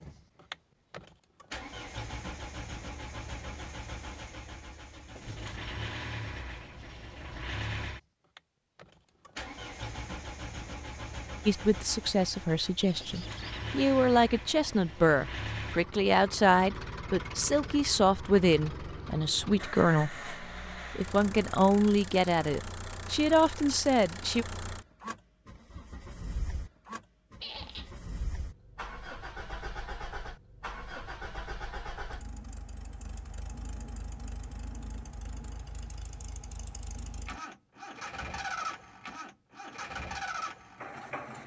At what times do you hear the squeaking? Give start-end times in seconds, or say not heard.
12.9-13.7, 27.4-27.9.